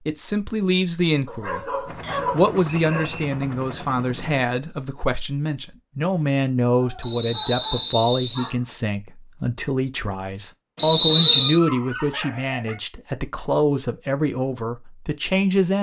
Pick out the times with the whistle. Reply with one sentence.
You can hear the whistle from 2.0 to 3.2 s, from 7.0 to 8.5 s and from 10.8 to 11.6 s.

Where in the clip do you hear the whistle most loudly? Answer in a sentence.
The volume of the whistle peaks at 11 seconds.